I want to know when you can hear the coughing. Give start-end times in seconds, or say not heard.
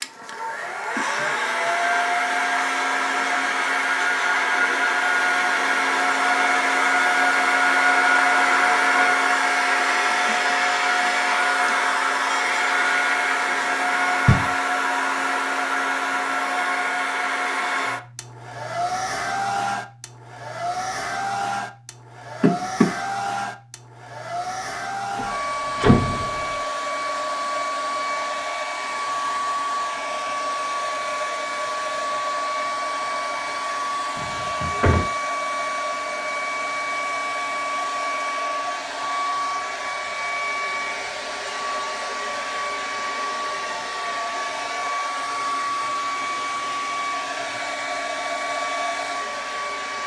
22.4-22.9.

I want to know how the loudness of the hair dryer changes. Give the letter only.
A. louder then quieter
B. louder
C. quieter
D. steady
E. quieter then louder
C.